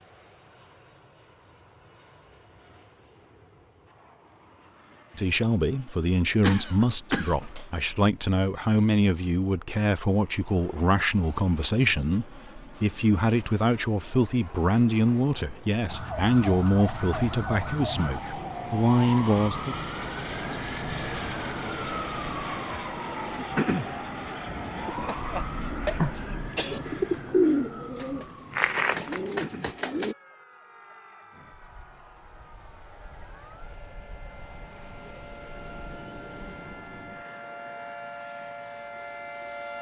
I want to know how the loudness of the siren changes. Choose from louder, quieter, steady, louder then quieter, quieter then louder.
quieter then louder.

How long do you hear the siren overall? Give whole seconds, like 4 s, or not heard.
24 s.